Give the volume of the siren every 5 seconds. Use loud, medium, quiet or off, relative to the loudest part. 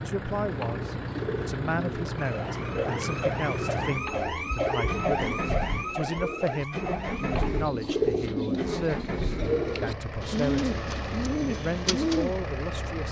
loud, loud, off.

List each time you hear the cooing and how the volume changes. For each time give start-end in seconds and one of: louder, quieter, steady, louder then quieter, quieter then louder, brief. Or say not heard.
0.4-12.4 louder.